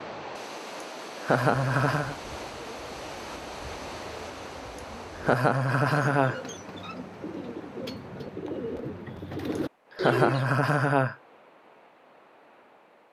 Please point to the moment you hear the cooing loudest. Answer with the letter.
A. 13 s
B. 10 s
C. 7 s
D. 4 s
B.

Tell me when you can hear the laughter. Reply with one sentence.
The laughter can be heard from 1.2 to 2.1 s, from 5.2 to 6.4 s and from 9.9 to 11.2 s.